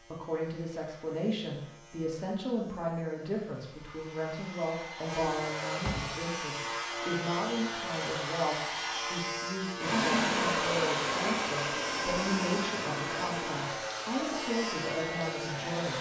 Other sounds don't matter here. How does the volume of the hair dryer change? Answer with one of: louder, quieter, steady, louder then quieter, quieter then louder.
louder then quieter.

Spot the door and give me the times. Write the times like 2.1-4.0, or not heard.
5.8-6.7.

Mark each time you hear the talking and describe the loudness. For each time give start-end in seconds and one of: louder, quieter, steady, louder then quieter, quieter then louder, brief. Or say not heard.
0.0-15.9 steady.